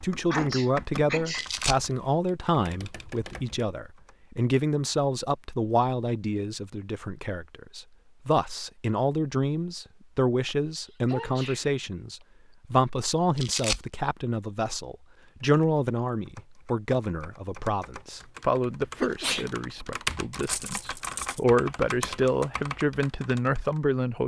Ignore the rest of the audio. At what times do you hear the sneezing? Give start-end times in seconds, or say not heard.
0.3-1.5, 10.4-12.2, 18.9-19.5.